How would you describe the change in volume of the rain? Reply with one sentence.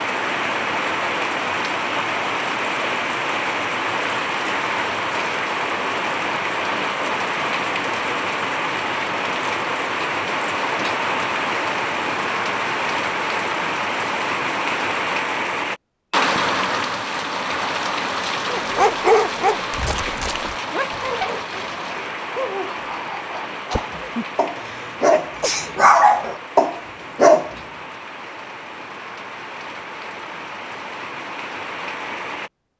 The loudness of the rain goes down.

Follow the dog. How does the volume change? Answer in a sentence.
The loudness of the dog goes down, then up.